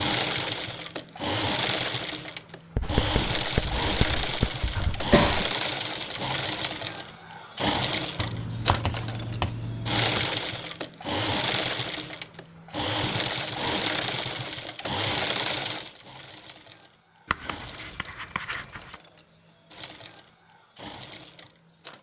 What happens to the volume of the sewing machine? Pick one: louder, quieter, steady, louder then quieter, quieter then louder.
quieter.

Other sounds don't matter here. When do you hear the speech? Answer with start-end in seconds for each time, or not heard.
not heard.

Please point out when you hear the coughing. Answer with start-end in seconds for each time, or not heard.
4.8-5.5.